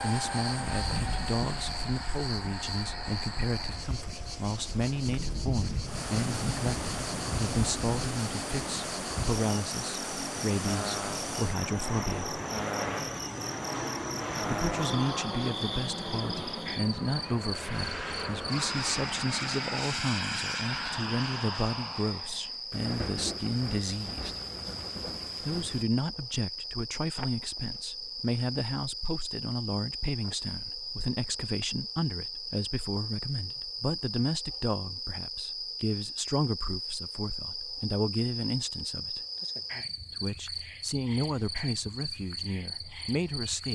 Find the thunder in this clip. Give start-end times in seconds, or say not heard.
5.0-8.0, 22.7-25.9.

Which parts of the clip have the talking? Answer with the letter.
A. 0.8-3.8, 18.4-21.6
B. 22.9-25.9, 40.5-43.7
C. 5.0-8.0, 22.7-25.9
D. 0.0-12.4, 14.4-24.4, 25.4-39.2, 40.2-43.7
D.